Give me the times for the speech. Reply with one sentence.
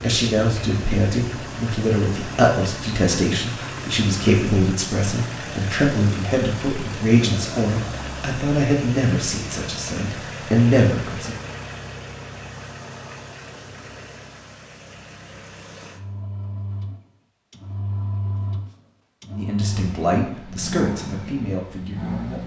You can hear the speech from 0.0 to 11.3 s and from 19.3 to 22.4 s.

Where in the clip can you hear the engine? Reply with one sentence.
The engine can be heard from 0.0 to 22.4 s.